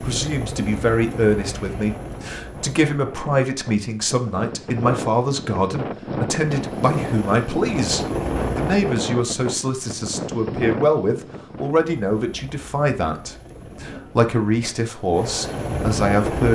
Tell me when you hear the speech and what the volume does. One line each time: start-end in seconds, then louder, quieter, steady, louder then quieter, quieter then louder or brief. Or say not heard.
0.0-16.5 steady.